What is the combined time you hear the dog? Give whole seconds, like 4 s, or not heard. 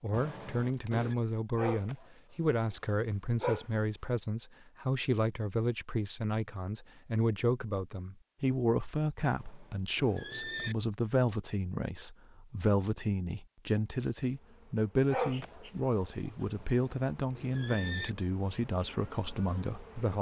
4 s.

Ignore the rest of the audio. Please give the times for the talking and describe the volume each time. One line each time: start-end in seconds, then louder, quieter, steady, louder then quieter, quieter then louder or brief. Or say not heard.
0.0-20.1 steady.